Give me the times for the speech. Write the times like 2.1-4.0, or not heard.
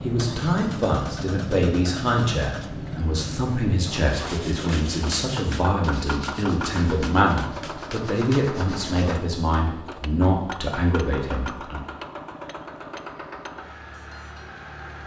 0.0-11.8.